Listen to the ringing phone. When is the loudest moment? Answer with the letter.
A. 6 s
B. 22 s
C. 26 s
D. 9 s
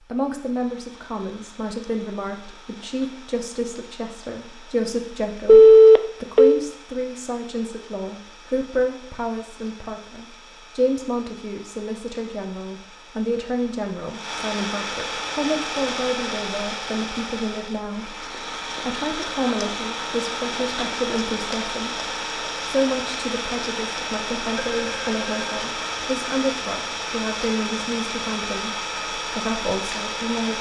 A.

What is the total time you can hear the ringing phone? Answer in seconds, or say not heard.
2 s.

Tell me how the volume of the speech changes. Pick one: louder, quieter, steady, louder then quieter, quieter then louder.
steady.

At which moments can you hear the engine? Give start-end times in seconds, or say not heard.
0.0-30.5.